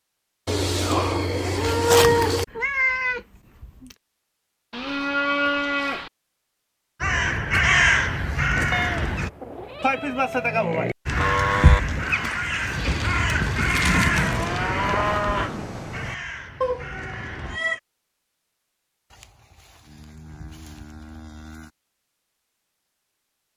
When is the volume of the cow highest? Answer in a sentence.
The loudest moment of the cow is at 2 seconds.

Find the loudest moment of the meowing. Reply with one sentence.
The volume of the meowing peaks at 3 seconds.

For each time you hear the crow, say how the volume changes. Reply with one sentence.
The crow can be heard briefly from 7.0 to 9.3 s; and from 11.1 to 17.6 s, getting quieter.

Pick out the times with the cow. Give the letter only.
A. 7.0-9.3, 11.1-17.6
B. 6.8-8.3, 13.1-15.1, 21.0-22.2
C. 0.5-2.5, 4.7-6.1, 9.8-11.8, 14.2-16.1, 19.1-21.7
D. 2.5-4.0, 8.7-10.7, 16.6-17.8
C.